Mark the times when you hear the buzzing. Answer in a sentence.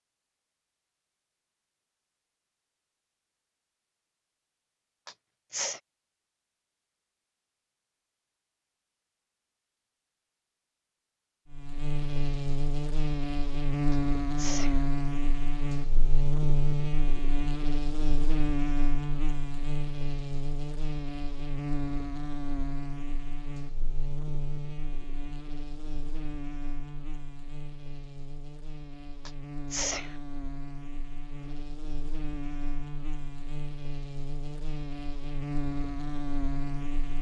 The buzzing can be heard from 11.5 to 37.1 s.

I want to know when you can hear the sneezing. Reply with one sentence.
The sneezing can be heard from 5.0 to 5.8 s, from 13.9 to 14.8 s and from 29.2 to 30.1 s.